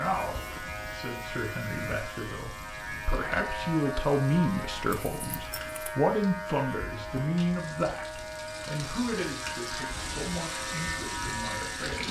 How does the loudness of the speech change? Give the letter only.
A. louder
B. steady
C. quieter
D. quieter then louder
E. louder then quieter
E.